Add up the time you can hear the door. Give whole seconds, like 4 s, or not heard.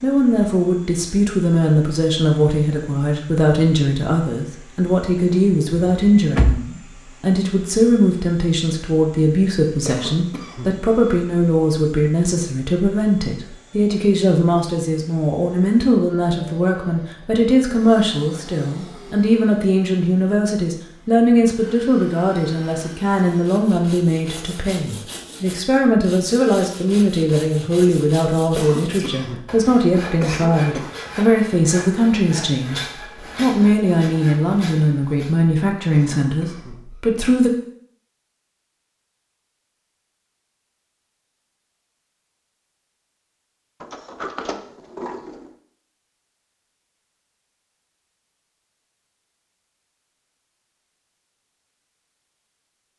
3 s.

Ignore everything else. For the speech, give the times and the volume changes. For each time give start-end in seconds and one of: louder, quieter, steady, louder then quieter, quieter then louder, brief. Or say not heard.
0.0-37.5 steady.